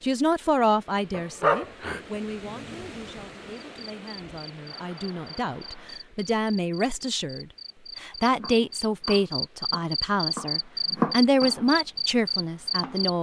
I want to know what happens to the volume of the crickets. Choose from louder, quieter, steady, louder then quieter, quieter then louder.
louder.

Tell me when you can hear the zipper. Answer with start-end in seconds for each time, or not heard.
not heard.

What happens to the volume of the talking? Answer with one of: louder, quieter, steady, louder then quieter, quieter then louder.
quieter then louder.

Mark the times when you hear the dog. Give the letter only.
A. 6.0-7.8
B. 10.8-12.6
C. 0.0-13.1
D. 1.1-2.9
D.